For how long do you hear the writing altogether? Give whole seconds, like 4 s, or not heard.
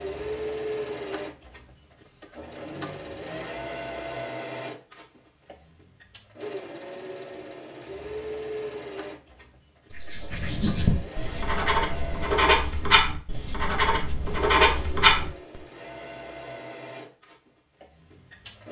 6 s.